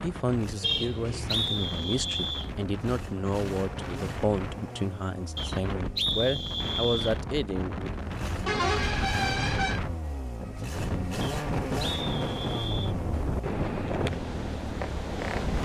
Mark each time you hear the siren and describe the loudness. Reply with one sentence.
You can't hear the siren here.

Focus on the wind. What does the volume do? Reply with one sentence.
The loudness of the wind goes up.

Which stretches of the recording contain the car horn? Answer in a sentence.
You can hear the car horn from 0.6 to 1.5 s and from 8.4 to 9.8 s.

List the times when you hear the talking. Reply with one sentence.
The talking can be heard from 0.0 to 7.9 s.